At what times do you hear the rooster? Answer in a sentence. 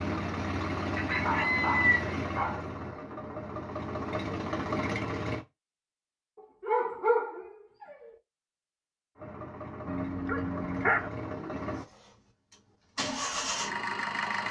You can hear the rooster from 0.9 to 2.5 s.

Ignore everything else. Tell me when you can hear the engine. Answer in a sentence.
The engine can be heard from 0.0 to 5.5 s and from 9.2 to 14.4 s.